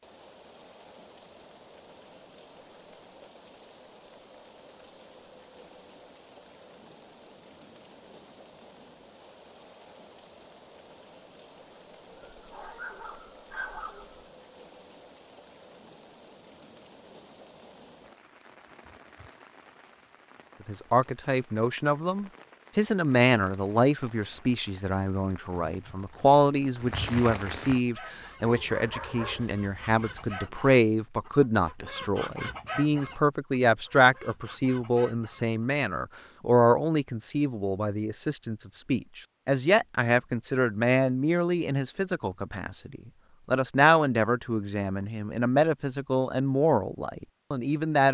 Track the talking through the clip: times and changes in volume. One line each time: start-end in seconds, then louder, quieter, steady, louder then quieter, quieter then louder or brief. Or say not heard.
20.6-48.0 steady.